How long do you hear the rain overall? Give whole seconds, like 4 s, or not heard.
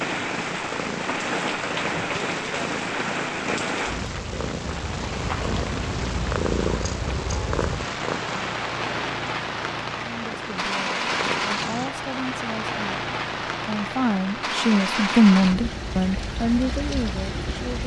18 s.